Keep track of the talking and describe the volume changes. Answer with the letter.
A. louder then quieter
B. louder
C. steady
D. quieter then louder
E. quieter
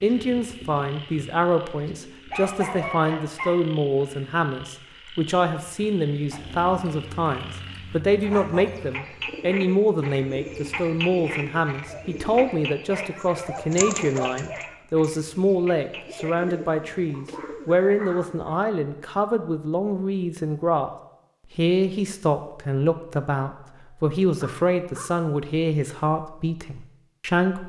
C.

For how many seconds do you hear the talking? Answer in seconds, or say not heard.
27 s.